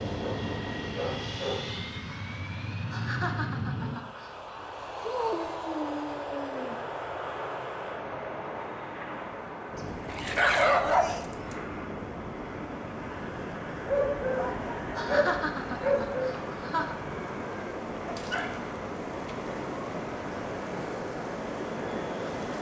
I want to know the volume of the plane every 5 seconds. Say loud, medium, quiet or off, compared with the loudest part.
loud, loud, medium, medium, medium.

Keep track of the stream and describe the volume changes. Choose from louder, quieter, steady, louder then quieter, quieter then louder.
louder.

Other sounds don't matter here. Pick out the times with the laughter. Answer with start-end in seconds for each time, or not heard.
2.9-4.3, 14.9-16.9.